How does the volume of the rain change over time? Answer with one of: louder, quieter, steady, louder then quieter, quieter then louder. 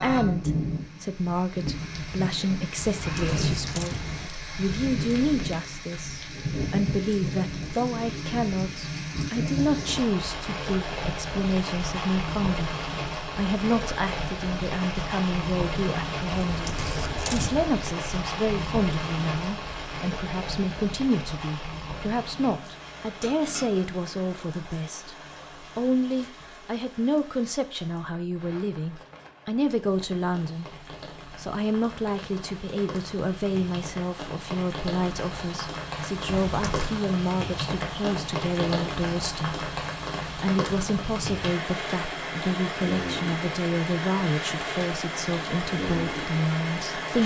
quieter then louder.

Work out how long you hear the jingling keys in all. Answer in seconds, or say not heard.
4 s.